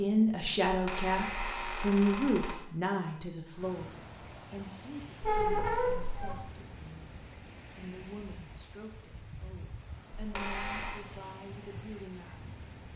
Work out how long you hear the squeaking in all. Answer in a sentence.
The squeaking can be heard for 4 seconds in total.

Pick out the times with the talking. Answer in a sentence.
The talking can be heard from 0.0 to 12.9 s.